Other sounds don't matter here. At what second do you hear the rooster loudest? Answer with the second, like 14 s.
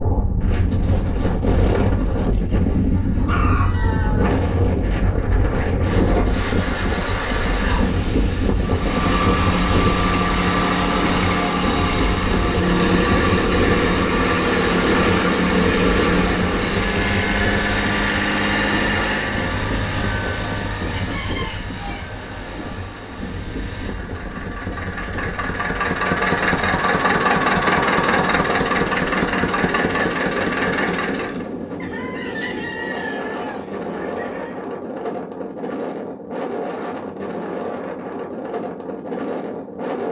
3 s.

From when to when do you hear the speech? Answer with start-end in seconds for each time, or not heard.
not heard.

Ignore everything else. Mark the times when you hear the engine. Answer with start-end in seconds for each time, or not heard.
8.6-31.4.